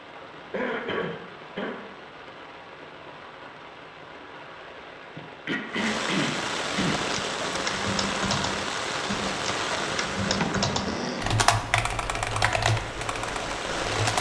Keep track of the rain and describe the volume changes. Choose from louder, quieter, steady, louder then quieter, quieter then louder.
louder then quieter.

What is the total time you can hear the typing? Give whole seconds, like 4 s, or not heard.
7 s.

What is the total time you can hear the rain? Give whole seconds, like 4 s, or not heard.
14 s.